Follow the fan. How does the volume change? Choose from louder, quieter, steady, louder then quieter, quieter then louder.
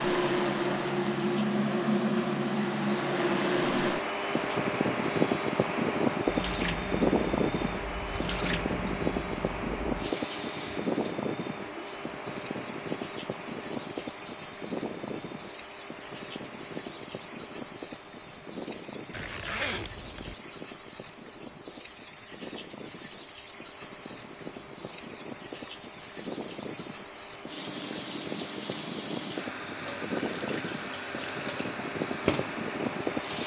quieter then louder.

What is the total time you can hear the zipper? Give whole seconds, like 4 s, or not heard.
2 s.